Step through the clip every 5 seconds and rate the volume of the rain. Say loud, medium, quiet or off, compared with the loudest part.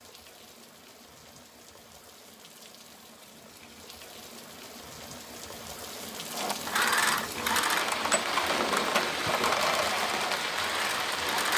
quiet, loud, loud.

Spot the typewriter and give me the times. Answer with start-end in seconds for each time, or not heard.
not heard.